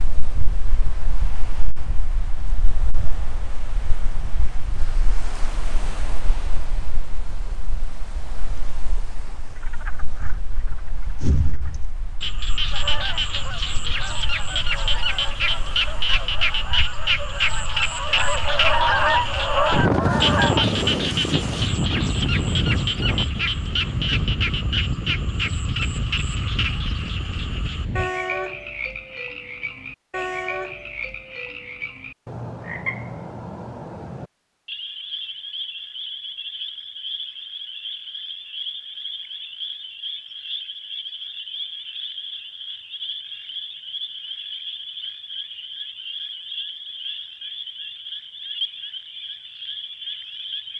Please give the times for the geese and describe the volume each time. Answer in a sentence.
You can hear the geese from 12.7 to 20.6 s, getting louder.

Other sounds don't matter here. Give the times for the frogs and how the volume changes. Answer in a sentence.
You can hear the frogs from 9.6 to 50.7 s, getting quieter.